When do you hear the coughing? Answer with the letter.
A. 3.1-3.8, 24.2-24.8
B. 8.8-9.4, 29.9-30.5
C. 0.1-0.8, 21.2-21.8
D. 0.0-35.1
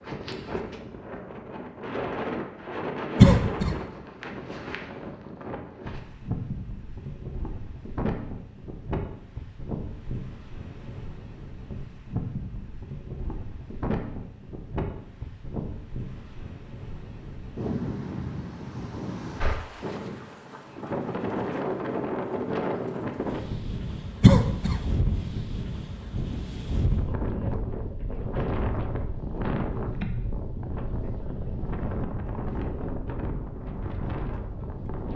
A.